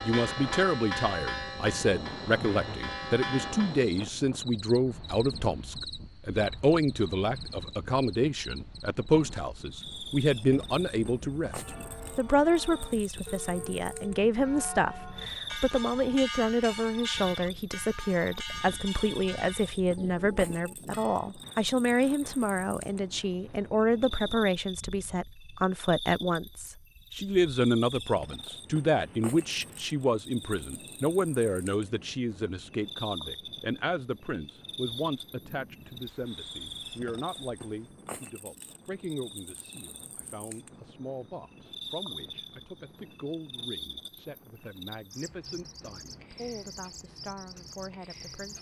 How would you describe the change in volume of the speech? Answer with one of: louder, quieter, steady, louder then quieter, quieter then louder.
quieter.